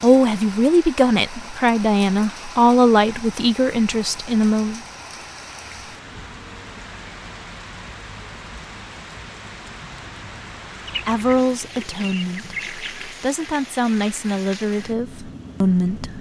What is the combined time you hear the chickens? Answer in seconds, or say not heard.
2 s.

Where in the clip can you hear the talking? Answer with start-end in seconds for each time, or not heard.
0.0-4.8, 11.1-16.1.